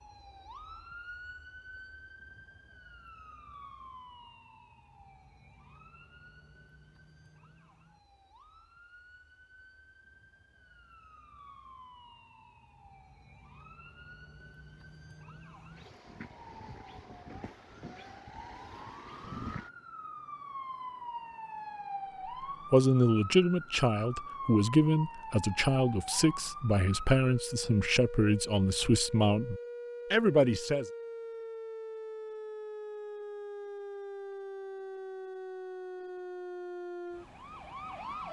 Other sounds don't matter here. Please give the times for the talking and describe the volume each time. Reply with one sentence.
You can hear the talking from 22.7 to 30.9 s, at a steady volume.